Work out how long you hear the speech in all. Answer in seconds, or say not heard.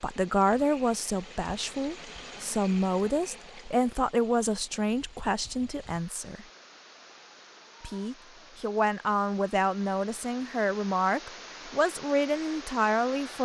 12 s.